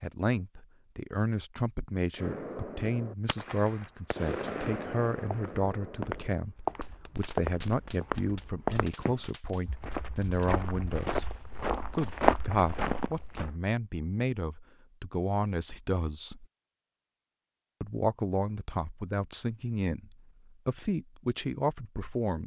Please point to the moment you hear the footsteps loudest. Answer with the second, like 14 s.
12 s.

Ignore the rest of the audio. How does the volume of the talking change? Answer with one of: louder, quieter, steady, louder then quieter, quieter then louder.
steady.